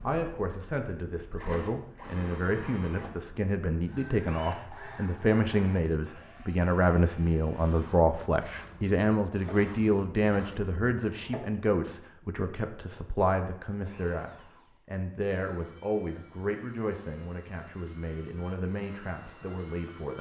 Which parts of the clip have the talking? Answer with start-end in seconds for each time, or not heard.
0.0-20.1.